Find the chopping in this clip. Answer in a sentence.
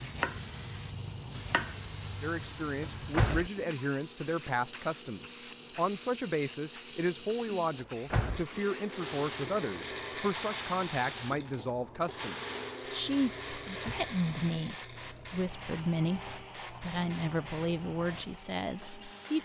You can hear the chopping from 0.0 to 3.3 s.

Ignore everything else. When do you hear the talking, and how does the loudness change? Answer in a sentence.
The talking can be heard from 2.2 to 19.4 s, at a steady volume.